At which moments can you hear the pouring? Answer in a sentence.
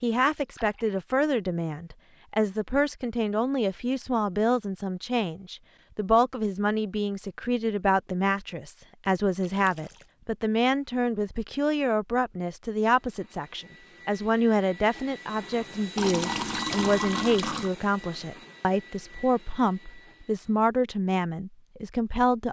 The pouring can be heard from 0.3 to 1.0 s, from 9.4 to 10.1 s and from 15.9 to 17.7 s.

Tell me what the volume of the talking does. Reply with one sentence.
The volume of the talking stays about the same.